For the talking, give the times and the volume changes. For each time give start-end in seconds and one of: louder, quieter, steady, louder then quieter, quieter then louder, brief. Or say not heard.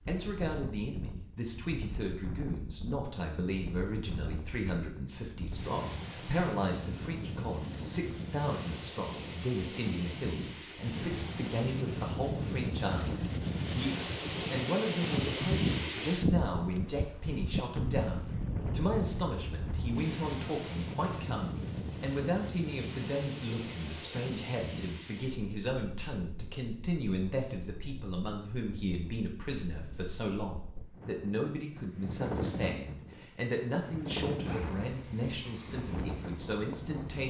0.1-37.2 steady.